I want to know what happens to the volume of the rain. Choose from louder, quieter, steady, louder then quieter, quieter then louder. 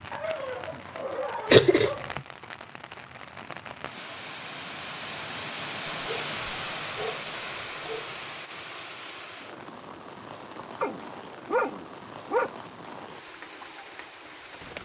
louder then quieter.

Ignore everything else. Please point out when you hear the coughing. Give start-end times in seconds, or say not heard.
1.5-2.2.